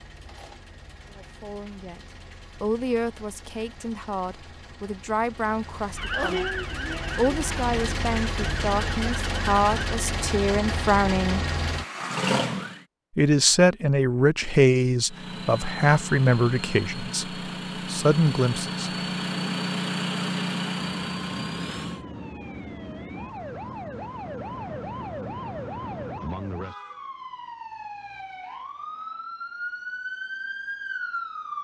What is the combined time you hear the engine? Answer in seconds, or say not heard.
20 s.